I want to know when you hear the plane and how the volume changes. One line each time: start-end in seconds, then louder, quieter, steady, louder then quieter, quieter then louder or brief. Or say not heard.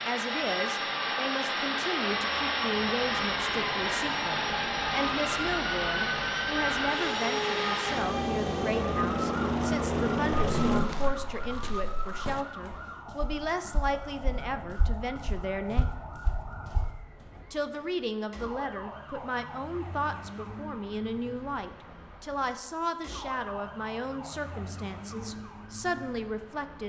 0.0-10.8 steady.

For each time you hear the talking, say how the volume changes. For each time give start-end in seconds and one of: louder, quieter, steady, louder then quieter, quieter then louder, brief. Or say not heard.
0.1-15.9 steady
17.5-26.8 steady.